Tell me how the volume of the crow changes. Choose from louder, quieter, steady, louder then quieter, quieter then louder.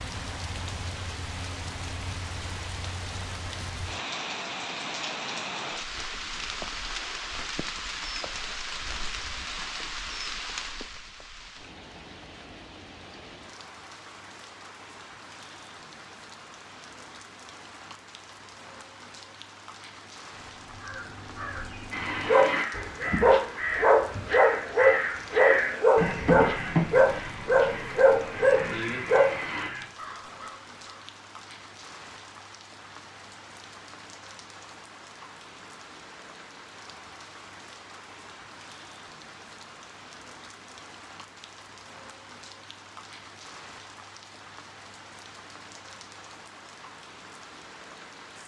louder then quieter.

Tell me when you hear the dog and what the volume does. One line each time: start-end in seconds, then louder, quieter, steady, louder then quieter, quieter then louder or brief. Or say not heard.
21.9-29.7 steady.